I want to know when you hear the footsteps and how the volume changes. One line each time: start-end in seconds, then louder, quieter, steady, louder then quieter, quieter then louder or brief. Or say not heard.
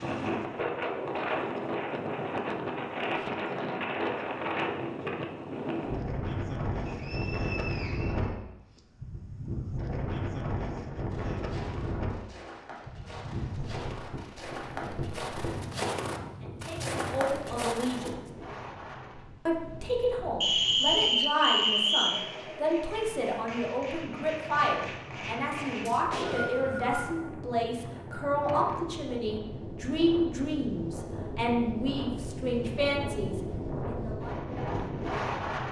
11.1-18.1 louder.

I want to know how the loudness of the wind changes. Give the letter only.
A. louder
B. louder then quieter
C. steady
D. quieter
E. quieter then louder
E.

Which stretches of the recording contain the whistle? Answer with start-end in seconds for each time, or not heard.
6.8-8.8, 20.4-22.2, 25.9-27.1.